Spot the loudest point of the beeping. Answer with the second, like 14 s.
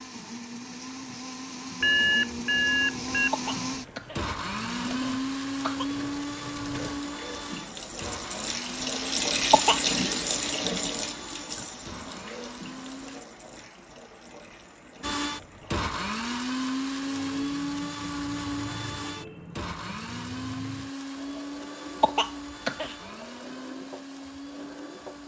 2 s.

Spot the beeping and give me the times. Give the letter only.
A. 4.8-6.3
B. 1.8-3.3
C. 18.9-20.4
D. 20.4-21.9
B.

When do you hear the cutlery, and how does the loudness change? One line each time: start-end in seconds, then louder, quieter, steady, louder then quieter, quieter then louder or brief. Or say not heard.
not heard.